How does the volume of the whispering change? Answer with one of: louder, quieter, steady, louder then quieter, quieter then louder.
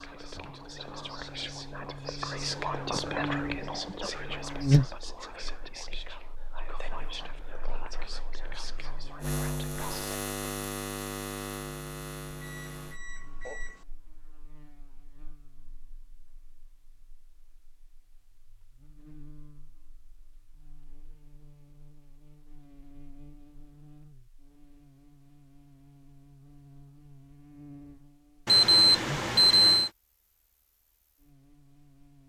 louder then quieter.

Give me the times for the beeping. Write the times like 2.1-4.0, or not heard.
12.4-13.8, 28.4-29.9.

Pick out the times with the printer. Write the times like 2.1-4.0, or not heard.
not heard.